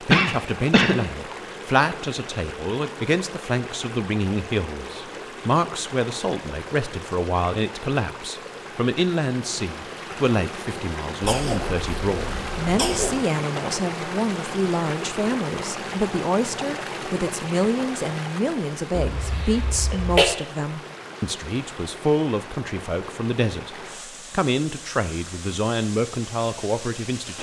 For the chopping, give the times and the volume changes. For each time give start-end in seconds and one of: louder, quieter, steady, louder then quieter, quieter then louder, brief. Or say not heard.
not heard.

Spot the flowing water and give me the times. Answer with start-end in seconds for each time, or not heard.
0.0-27.3.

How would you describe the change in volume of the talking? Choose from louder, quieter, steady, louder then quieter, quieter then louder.
steady.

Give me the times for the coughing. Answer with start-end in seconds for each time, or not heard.
0.1-0.9, 11.2-13.2, 18.9-20.3.